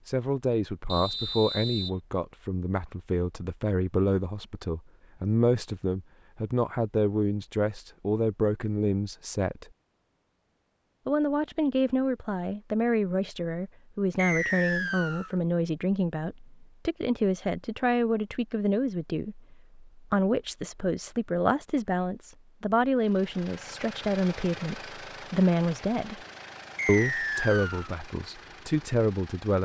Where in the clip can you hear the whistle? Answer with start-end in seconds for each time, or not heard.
0.8-1.9, 14.2-15.3, 26.8-27.9.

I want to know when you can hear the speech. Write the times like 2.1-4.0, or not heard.
0.1-9.7, 11.1-26.2, 26.9-29.6.